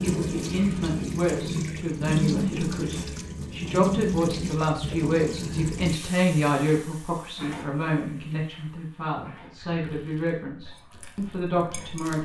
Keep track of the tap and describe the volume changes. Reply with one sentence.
The volume of the tap goes down.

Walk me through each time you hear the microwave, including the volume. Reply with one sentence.
The microwave can't be heard in this clip.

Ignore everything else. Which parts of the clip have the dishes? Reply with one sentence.
The dishes can be heard from 10.8 to 12.2 s.